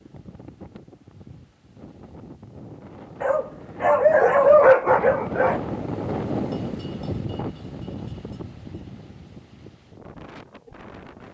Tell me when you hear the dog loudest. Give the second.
5 s.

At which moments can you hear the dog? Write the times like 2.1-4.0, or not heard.
3.2-5.6.